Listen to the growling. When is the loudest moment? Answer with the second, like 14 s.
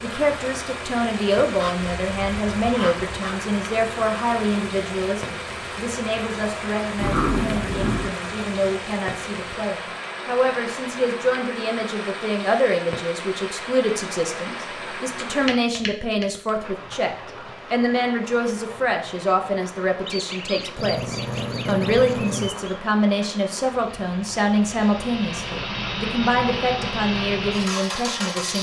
7 s.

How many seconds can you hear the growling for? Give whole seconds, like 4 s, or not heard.
3 s.